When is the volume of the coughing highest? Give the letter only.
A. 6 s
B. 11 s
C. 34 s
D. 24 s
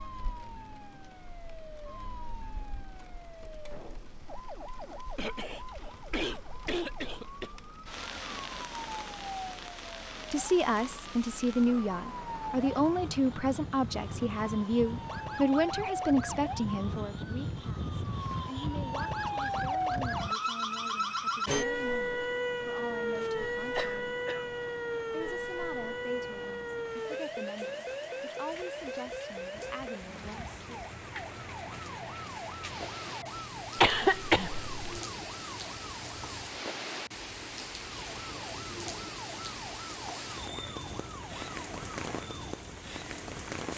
C.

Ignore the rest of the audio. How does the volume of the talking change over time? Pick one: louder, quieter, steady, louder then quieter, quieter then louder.
quieter.